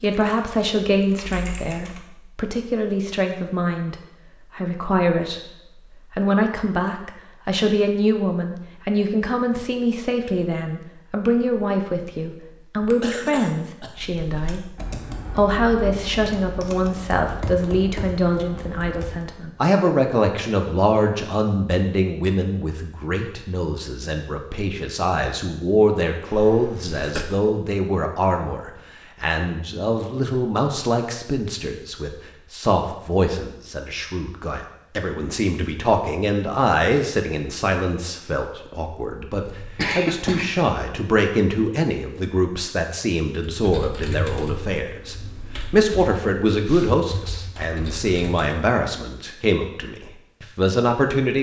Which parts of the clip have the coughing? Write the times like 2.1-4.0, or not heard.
12.8-13.9, 26.3-27.2, 39.5-40.5.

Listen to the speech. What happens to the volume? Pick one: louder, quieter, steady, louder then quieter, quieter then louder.
steady.